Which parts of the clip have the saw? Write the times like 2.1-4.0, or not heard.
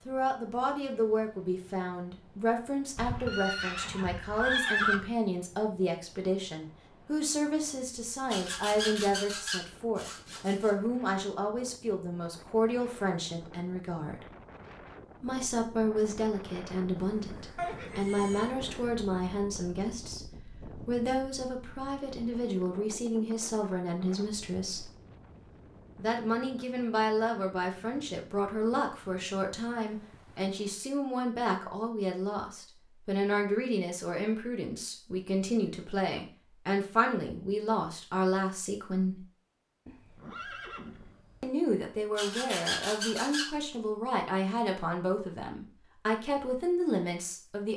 8.2-10.8, 42.1-43.5.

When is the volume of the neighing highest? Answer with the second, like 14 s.
5 s.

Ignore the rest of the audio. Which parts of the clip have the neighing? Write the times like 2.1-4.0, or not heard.
3.0-5.0, 17.6-18.5, 39.9-41.5.